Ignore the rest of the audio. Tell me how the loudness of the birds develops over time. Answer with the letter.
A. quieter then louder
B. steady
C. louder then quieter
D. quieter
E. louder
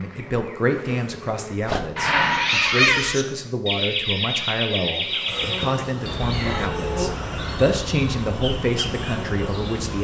D.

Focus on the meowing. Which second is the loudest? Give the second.
3 s.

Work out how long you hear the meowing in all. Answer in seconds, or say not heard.
3 s.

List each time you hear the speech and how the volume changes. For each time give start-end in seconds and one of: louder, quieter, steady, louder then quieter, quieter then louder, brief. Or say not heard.
0.0-9.9 steady.